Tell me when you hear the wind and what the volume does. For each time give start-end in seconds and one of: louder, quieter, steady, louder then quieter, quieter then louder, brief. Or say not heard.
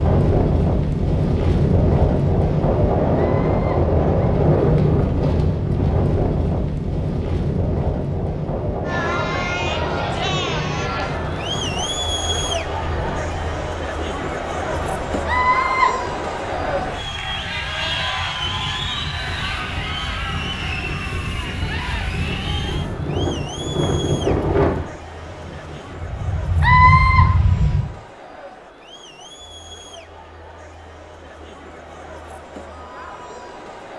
0.0-27.8 quieter then louder.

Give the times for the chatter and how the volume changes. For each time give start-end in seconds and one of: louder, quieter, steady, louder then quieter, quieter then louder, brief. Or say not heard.
8.8-33.9 quieter.